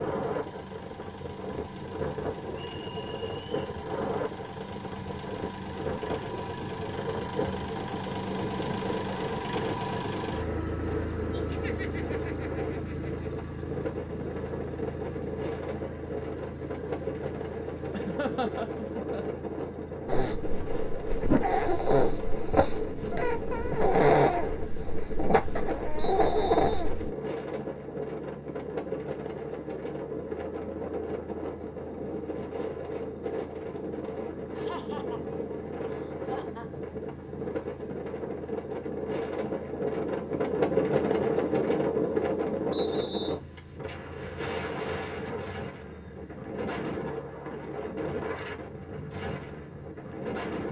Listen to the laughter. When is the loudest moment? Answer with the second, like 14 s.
18 s.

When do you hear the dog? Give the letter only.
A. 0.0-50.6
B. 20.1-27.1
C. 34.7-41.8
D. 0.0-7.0
B.